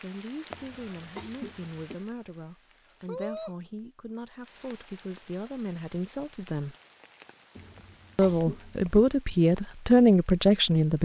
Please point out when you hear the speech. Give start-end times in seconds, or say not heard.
0.0-6.8, 8.2-10.9.